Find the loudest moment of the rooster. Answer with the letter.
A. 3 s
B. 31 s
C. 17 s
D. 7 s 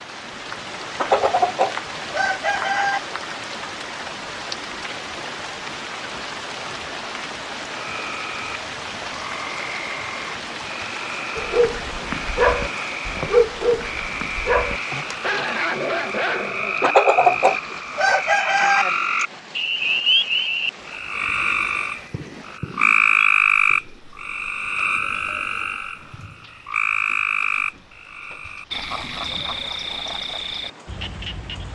C.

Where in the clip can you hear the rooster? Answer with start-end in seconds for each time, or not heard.
0.9-3.0, 16.8-18.9.